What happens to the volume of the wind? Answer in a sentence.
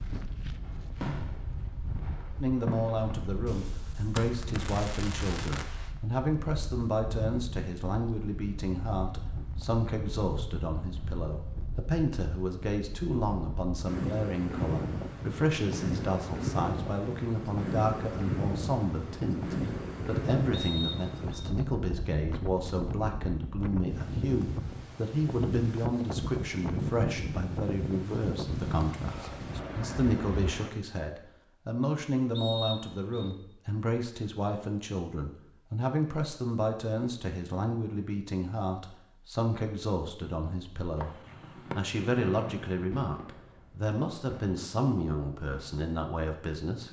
The loudness of the wind goes up.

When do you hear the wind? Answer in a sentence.
The wind can be heard from 0.0 to 30.7 s.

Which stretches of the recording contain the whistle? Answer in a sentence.
The whistle can be heard from 20.5 to 21.5 s and from 32.4 to 33.3 s.